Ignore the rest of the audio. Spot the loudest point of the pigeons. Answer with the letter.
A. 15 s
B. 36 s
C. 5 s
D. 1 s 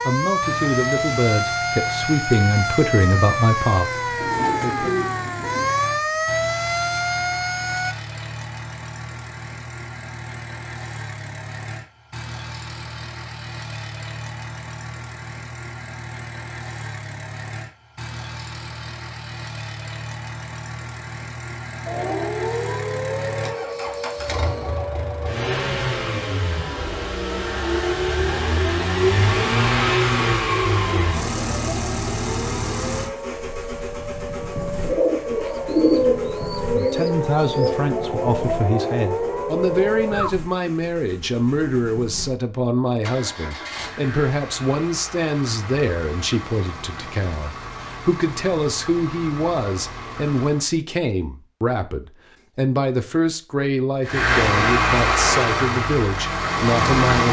B.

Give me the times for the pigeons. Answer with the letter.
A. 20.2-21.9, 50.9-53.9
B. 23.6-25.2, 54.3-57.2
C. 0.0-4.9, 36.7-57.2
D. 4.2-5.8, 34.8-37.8
D.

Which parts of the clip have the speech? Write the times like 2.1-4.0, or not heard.
0.0-4.9, 36.7-57.2.